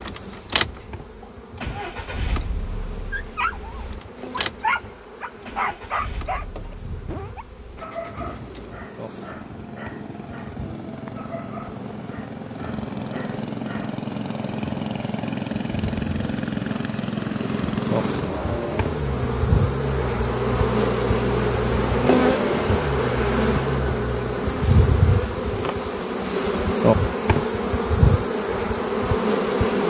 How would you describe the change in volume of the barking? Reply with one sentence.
The volume of the barking goes down.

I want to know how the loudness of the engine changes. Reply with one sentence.
The volume of the engine goes down, then up.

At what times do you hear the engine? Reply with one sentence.
The engine can be heard from 0.0 to 24.4 s.